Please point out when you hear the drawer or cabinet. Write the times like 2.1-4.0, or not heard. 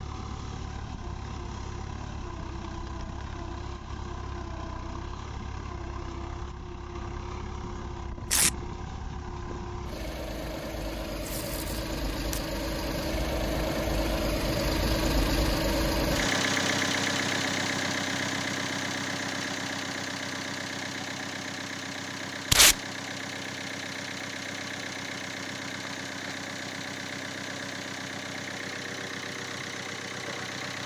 not heard.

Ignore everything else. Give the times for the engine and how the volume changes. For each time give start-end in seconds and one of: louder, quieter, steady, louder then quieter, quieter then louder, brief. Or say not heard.
0.0-30.8 louder then quieter.